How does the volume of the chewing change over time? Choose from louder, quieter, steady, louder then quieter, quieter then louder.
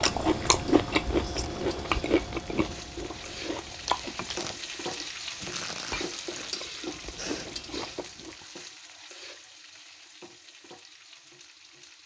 quieter.